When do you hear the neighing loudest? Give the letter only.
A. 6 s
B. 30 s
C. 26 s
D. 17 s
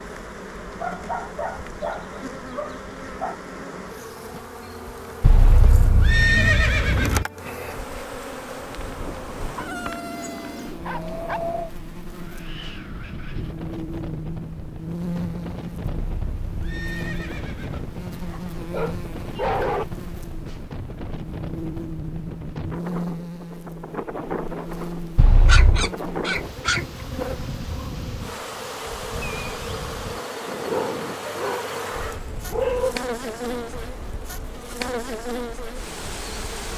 A.